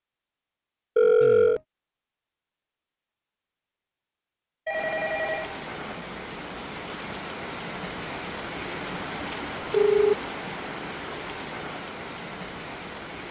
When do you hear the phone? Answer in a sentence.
You can hear the phone from 0.9 to 1.6 s, from 4.7 to 5.6 s and from 9.3 to 10.2 s.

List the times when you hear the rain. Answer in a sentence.
The rain can be heard from 4.7 to 13.2 s.